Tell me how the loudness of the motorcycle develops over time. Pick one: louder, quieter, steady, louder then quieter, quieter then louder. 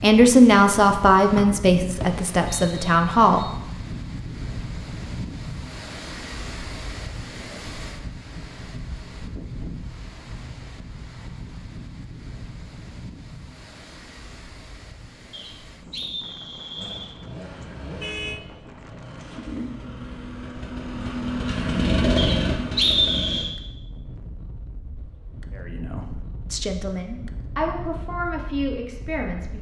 louder.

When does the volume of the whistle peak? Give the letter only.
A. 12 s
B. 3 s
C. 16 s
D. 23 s
D.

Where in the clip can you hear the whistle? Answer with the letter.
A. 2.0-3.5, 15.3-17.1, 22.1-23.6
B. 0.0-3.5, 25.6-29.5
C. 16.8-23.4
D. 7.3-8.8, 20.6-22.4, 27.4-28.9
A.